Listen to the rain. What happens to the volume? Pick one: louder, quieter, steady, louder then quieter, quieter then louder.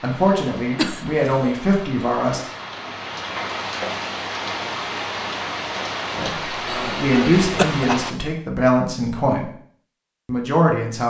louder.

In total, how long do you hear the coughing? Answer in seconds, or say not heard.
2 s.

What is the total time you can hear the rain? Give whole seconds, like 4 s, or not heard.
8 s.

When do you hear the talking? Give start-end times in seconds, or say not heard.
0.0-2.4, 6.2-9.5, 10.2-11.0.